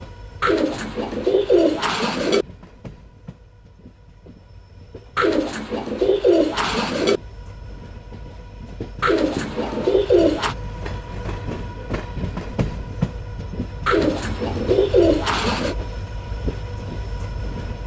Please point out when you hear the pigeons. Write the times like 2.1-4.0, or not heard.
0.4-2.5, 5.2-7.2, 9.0-10.6, 13.8-15.8.